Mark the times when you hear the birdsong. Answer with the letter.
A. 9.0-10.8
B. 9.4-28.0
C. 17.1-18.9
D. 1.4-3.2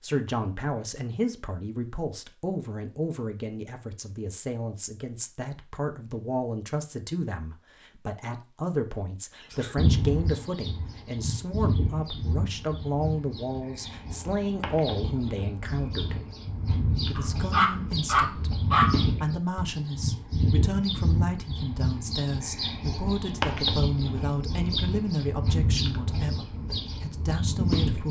B.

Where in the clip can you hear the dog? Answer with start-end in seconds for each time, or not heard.
17.1-18.9.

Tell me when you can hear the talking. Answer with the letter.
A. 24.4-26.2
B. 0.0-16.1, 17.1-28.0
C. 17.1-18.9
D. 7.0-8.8
B.